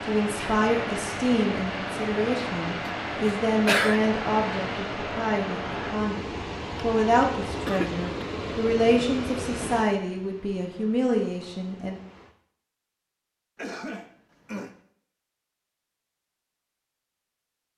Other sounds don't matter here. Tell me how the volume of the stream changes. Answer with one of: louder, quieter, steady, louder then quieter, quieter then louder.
quieter.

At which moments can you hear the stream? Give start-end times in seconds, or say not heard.
0.0-12.3.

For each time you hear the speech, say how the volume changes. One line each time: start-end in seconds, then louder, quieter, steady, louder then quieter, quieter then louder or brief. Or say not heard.
0.1-12.0 steady.